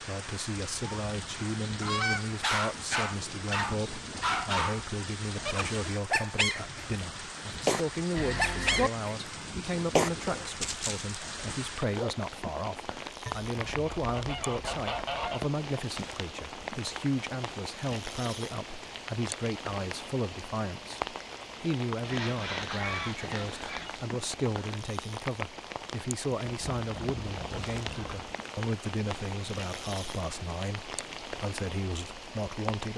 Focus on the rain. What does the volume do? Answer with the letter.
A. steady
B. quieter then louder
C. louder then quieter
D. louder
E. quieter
A.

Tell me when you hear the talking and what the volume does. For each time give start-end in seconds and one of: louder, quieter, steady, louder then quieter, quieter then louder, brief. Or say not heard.
0.0-32.9 steady.